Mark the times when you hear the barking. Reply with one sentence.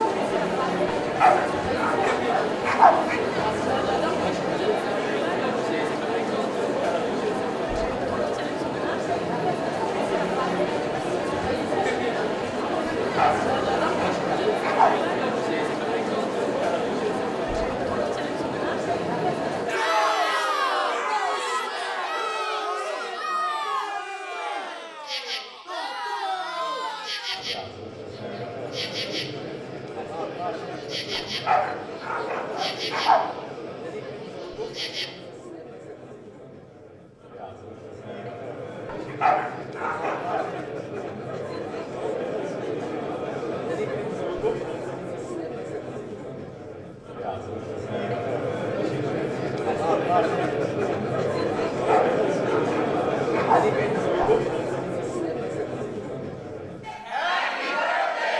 The barking can be heard from 1.1 to 3.2 s, from 13.1 to 14.9 s, from 31.1 to 33.2 s, from 38.9 to 40.5 s and from 51.5 to 54.3 s.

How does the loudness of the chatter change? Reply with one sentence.
The volume of the chatter goes down, then up.